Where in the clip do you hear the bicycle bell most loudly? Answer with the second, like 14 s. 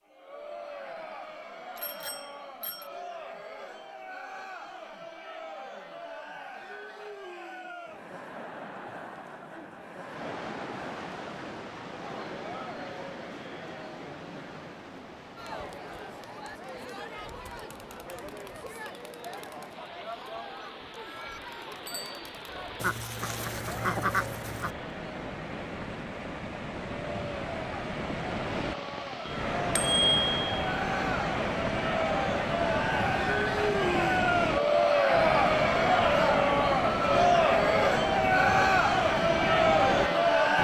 30 s.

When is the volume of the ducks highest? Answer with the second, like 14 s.
24 s.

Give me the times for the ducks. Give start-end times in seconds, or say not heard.
22.8-24.8.